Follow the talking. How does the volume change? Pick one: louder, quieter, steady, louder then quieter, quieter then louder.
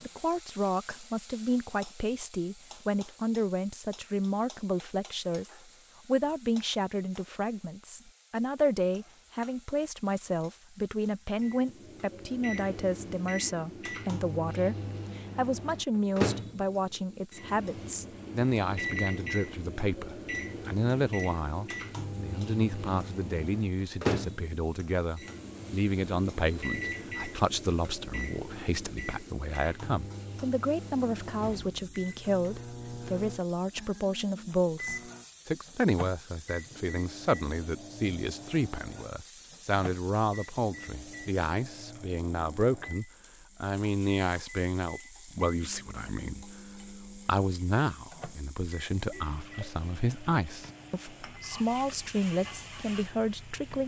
steady.